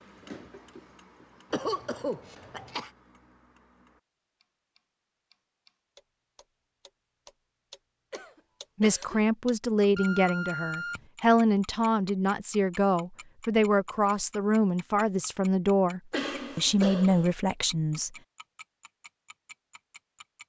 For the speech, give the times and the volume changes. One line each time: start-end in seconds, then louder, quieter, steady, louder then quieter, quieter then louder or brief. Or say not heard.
8.8-18.1 steady.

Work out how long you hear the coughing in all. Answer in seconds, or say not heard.
4 s.